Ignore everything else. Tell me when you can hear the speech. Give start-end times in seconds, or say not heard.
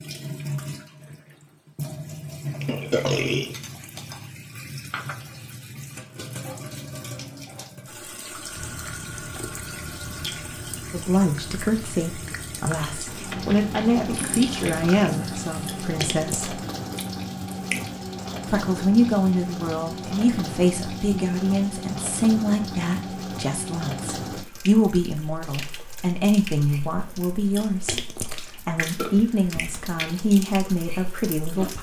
10.9-16.6, 18.5-28.0, 28.6-31.7.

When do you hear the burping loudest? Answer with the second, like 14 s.
3 s.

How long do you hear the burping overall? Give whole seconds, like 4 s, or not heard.
4 s.